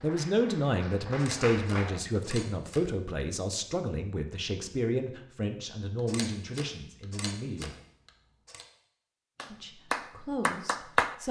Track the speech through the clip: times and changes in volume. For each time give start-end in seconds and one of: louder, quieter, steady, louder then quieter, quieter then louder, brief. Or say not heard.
0.0-7.8 quieter
9.5-11.2 brief.